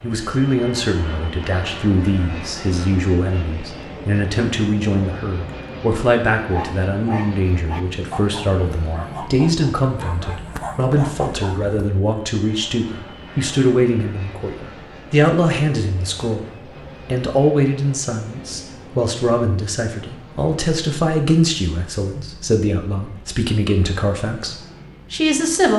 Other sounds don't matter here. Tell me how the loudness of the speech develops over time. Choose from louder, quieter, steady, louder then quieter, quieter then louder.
steady.